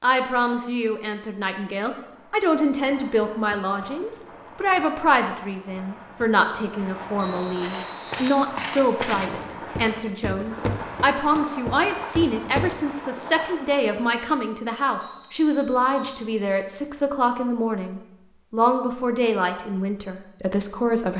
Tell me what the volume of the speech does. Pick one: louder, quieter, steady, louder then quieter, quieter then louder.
steady.